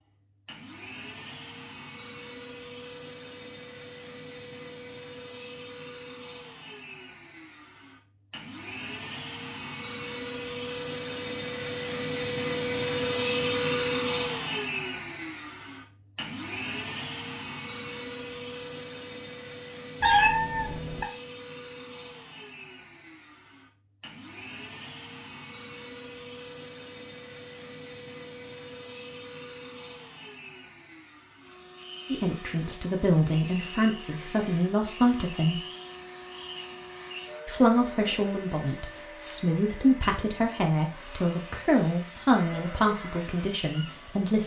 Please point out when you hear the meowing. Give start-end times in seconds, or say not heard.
20.0-21.1.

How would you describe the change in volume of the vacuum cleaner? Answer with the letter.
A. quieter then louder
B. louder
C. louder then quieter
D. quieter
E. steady
C.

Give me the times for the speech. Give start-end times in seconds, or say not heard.
32.1-35.6, 37.5-44.4.